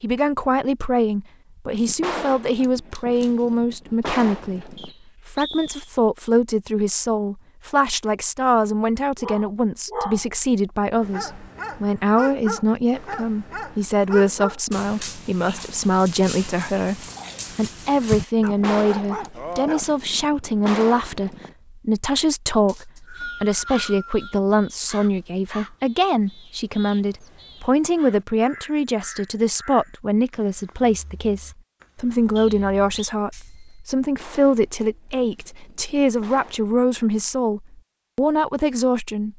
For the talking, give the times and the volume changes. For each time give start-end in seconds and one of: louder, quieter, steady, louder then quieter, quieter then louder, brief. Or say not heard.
0.0-39.3 steady.